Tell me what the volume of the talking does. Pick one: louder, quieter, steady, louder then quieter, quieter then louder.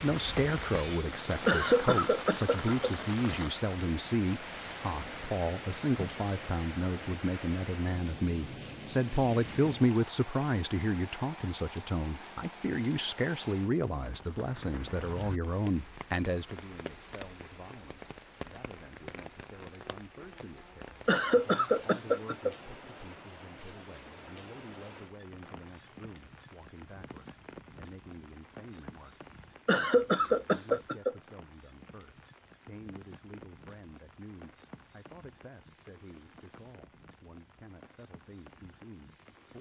quieter.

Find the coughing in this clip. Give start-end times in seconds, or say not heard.
1.4-2.9, 21.1-22.6, 29.6-31.1.